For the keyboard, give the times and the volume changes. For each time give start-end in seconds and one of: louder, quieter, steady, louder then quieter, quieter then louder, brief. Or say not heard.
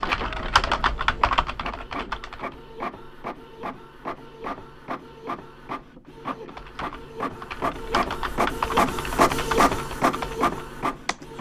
0.0-2.5 brief
6.5-11.3 louder then quieter.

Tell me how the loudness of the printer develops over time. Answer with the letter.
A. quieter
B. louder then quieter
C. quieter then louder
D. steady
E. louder
E.